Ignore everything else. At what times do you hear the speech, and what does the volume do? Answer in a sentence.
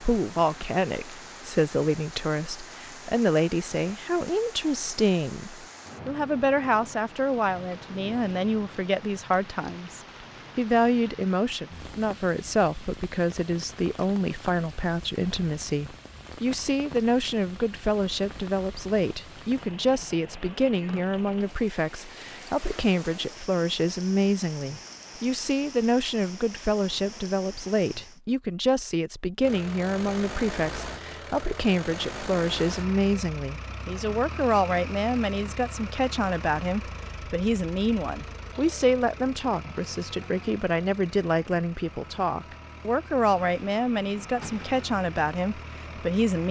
You can hear the speech from 0.0 to 46.4 s, at a steady volume.